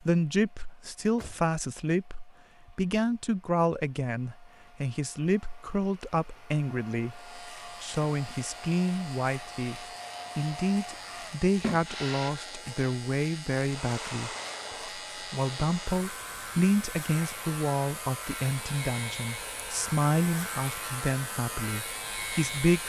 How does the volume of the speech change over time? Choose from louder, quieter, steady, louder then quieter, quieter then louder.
steady.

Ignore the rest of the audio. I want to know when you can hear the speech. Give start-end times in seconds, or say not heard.
0.1-14.3, 15.2-22.8.